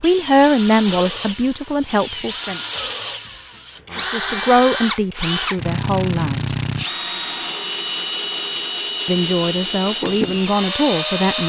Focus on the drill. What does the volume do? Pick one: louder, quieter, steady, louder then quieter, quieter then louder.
steady.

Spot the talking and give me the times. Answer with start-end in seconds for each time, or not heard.
0.0-2.6, 4.0-6.5, 9.1-11.4.